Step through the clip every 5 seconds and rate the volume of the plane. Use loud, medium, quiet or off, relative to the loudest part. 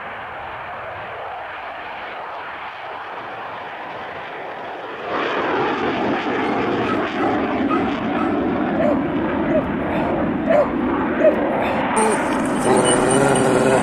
medium, loud, loud.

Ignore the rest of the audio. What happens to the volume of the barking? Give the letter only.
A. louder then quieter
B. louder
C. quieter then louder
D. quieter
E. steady
B.